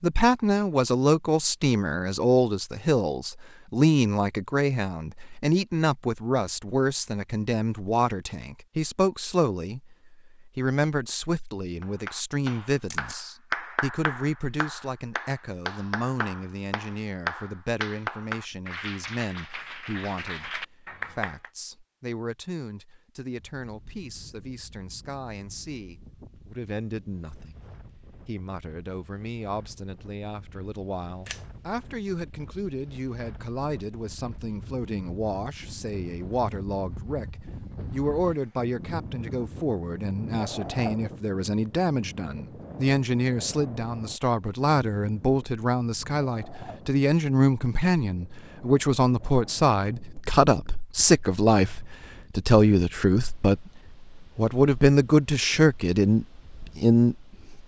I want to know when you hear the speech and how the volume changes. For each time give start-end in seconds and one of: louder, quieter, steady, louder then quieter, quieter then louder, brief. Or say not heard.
0.0-27.6 quieter
28.2-57.6 louder.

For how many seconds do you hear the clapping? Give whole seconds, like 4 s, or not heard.
10 s.